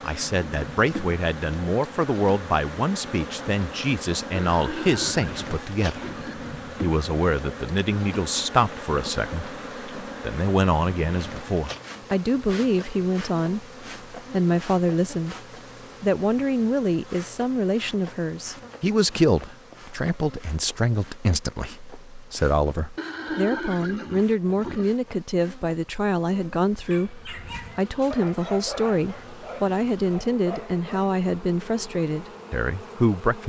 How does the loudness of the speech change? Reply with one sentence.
The volume of the speech stays about the same.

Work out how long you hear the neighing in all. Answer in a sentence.
The neighing can be heard for 4 seconds in total.